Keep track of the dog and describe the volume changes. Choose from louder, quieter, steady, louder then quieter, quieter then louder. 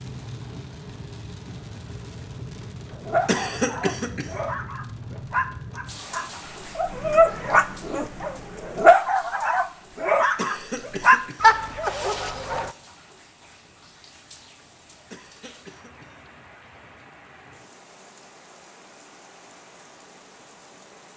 louder.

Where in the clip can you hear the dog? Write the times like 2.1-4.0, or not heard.
2.9-12.7.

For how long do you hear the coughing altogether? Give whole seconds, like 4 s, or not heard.
4 s.